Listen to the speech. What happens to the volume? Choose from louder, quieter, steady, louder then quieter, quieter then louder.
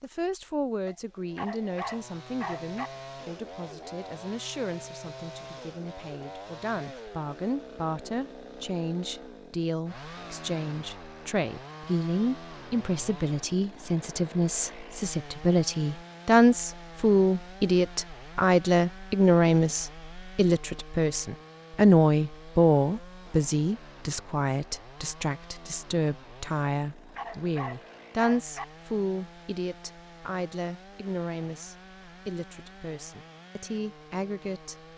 louder then quieter.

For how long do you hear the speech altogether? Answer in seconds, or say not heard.
35 s.